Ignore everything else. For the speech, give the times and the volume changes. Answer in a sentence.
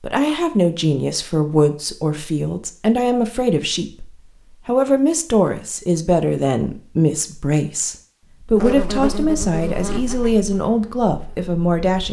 The speech can be heard from 0.0 to 12.0 s, at a steady volume.